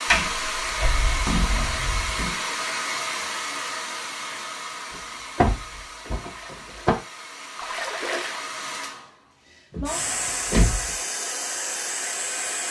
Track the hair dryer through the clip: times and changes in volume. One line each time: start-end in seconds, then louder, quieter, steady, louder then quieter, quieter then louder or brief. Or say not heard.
0.0-12.6 quieter then louder.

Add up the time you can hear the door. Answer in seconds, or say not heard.
5 s.